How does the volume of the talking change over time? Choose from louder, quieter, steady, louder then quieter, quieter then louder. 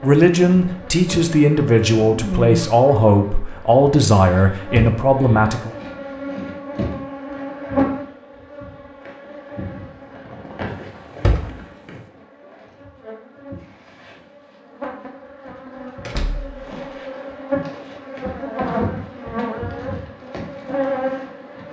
steady.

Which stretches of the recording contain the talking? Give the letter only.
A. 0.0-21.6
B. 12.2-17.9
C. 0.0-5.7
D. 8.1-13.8
C.